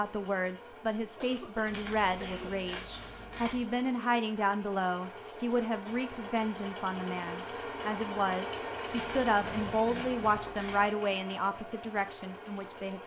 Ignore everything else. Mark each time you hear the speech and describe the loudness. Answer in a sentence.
You can hear the speech from 0.0 to 13.0 s, at a steady volume.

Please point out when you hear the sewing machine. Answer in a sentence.
You can hear the sewing machine from 0.0 to 13.0 s.